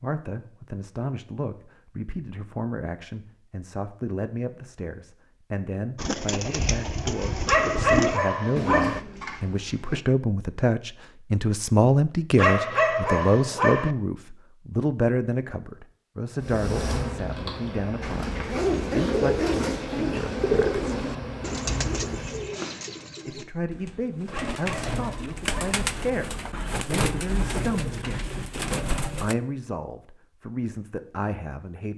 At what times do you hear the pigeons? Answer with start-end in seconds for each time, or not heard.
6.0-10.1, 18.0-29.4.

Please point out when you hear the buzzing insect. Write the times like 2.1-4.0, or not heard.
16.4-22.4.